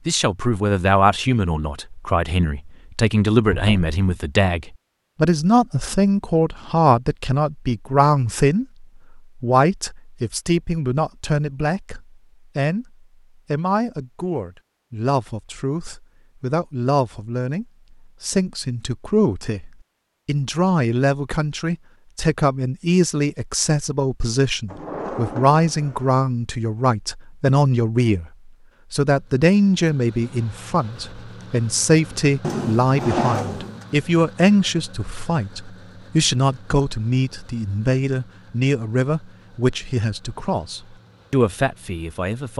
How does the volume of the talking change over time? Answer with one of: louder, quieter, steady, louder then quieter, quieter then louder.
steady.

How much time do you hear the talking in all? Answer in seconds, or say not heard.
42 s.